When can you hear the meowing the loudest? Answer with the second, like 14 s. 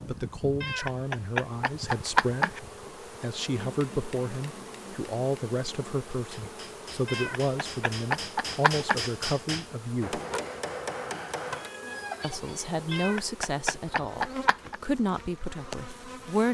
2 s.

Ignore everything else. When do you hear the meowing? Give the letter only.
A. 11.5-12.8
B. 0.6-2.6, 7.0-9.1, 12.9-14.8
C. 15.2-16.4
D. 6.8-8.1
B.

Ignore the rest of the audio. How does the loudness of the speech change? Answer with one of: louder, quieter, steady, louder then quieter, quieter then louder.
steady.